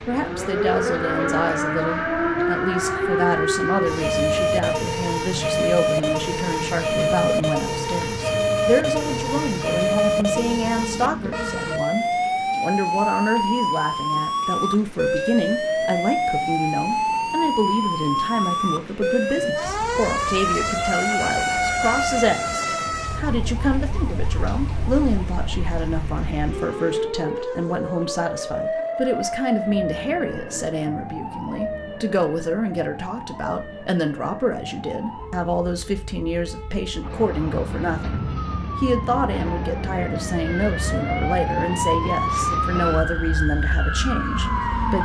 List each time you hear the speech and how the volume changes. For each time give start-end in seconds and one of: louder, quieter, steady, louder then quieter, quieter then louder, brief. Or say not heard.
0.1-45.0 steady.